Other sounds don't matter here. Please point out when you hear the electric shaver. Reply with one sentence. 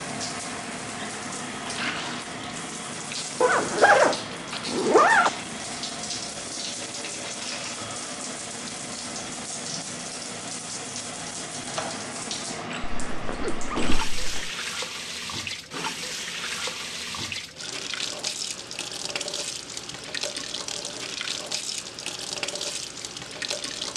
The electric shaver can't be heard in this clip.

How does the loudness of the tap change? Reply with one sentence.
The volume of the tap stays about the same.